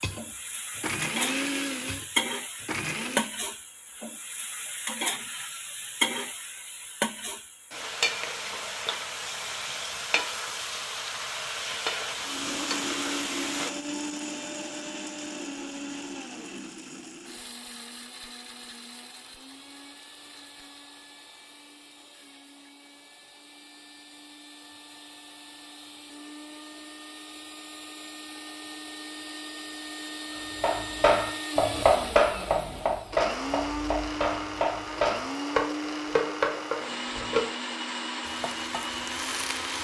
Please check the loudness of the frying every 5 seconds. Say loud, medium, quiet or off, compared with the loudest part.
loud, loud, loud, off, off, off, off, medium.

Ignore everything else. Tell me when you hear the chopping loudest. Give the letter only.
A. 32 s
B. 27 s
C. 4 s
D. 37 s
A.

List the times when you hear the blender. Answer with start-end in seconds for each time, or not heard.
0.0-3.3, 12.2-39.8.